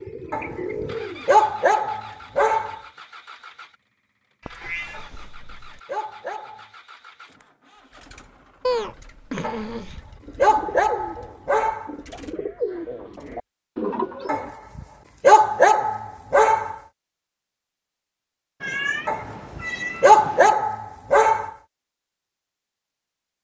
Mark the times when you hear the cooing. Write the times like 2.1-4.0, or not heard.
0.0-1.6, 10.2-14.5.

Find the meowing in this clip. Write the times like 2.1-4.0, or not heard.
4.4-5.8, 8.6-10.1, 18.6-20.6.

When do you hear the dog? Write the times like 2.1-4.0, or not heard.
0.3-2.8, 4.9-6.7, 9.4-11.9, 14.2-16.8, 19.1-21.5.